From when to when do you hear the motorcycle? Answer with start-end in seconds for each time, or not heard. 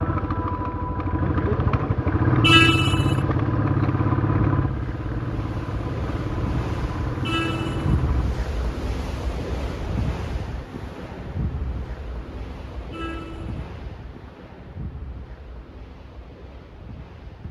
0.0-8.2.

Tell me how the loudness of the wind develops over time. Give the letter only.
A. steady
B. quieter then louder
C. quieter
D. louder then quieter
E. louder
D.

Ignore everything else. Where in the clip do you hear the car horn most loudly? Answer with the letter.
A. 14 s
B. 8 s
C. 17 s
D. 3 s
D.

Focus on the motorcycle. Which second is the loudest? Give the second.
3 s.